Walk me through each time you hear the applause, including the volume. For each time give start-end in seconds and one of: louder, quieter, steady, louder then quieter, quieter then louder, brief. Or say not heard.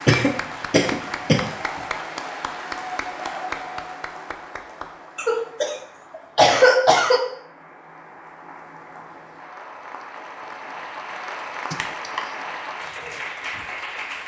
0.0-14.2 quieter then louder.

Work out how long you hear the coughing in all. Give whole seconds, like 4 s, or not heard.
4 s.